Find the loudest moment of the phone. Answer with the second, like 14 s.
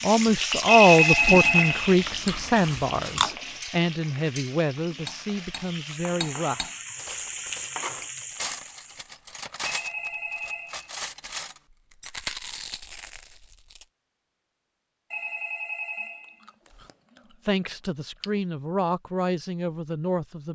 1 s.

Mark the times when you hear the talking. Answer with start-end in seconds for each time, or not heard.
0.0-6.7, 17.4-20.5.